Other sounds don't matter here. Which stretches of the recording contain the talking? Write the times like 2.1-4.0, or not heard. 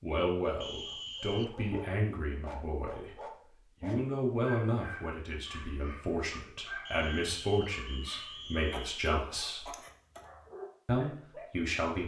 0.0-9.7, 10.8-12.0.